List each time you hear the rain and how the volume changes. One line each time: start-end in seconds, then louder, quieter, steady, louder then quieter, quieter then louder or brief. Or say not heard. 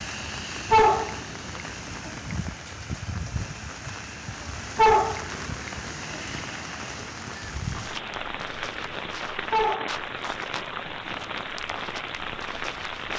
0.0-13.1 steady.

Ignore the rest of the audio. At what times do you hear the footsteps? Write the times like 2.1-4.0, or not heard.
7.7-13.1.